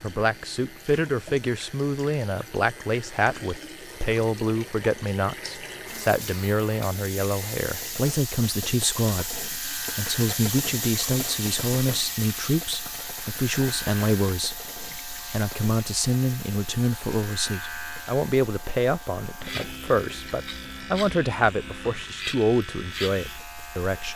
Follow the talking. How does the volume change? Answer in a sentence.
The volume of the talking stays about the same.